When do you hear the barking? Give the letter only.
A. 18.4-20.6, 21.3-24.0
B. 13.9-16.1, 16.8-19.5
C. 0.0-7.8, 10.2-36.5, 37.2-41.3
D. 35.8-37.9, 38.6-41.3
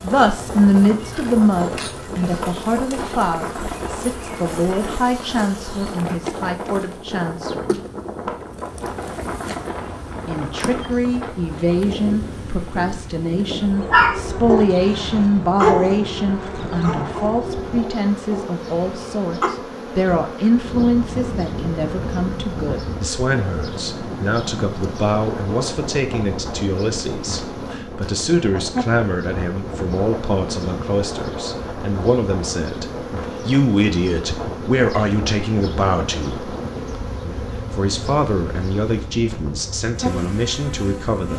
B.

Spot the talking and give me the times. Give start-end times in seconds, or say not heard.
0.0-7.8, 10.2-36.5, 37.2-41.3.